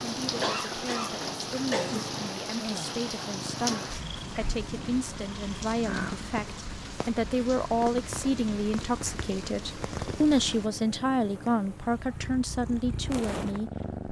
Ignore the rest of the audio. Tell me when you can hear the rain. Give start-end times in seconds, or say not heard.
0.0-10.7.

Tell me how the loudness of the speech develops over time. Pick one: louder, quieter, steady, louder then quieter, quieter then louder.
louder.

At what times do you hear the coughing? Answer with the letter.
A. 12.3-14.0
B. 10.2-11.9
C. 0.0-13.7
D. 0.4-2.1
D.